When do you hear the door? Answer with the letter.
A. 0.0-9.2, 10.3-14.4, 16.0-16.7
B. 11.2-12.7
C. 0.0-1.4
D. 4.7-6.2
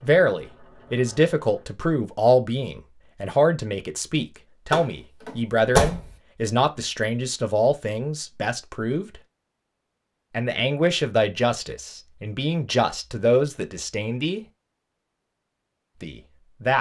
D.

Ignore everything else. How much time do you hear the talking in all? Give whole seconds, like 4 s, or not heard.
14 s.